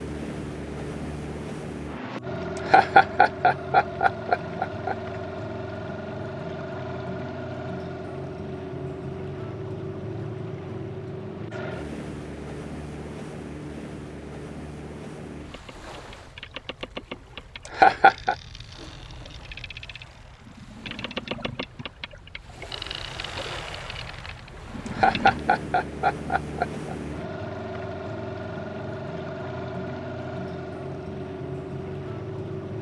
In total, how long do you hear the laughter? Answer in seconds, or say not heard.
5 s.